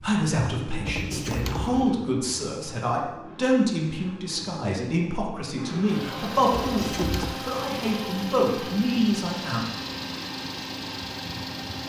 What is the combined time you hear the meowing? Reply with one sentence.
The meowing can be heard for 2 seconds in total.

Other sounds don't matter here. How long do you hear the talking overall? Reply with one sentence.
The talking can be heard for 10 seconds in total.